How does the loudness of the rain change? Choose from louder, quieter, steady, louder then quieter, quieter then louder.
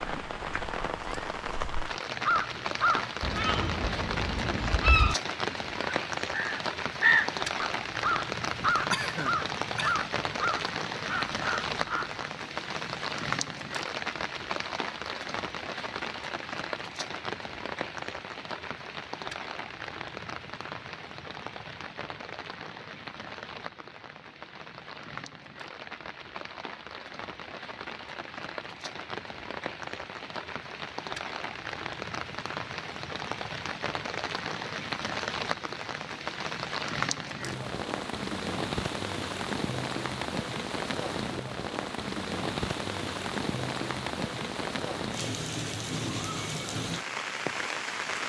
quieter then louder.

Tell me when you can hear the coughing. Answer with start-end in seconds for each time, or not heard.
8.9-9.9.